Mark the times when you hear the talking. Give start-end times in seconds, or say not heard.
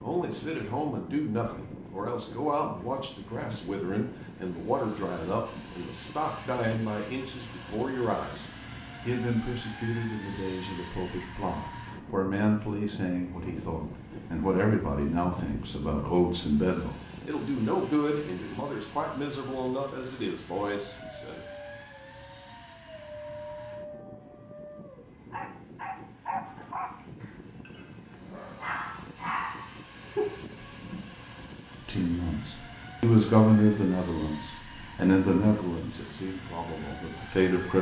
0.0-21.4, 31.9-37.7.